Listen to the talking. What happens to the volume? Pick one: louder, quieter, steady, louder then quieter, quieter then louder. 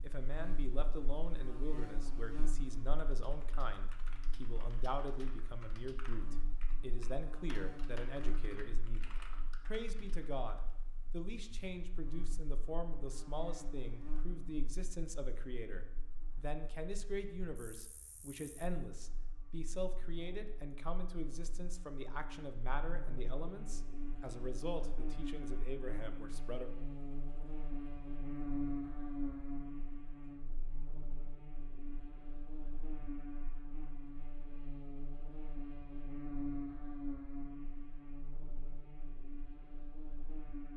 steady.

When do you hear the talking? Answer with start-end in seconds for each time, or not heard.
0.0-26.7.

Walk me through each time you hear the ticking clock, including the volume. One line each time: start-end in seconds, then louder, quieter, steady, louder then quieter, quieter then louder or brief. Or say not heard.
not heard.